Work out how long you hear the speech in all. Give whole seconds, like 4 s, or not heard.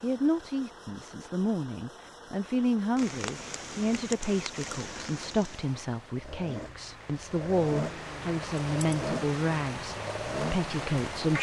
11 s.